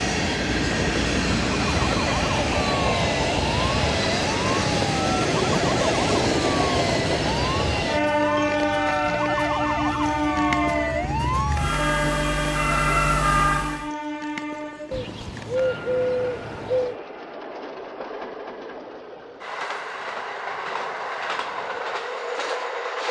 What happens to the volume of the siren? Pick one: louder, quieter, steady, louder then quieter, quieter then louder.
louder.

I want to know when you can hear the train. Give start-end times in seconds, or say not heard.
0.0-23.0.